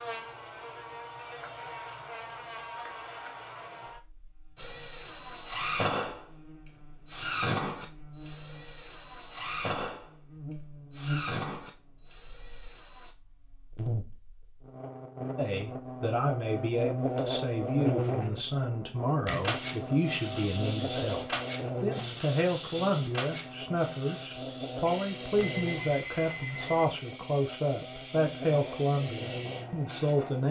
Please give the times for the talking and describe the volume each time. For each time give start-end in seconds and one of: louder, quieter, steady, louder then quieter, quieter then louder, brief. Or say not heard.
15.3-30.4 steady.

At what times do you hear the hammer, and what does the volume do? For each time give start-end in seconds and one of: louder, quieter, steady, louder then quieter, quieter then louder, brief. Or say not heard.
not heard.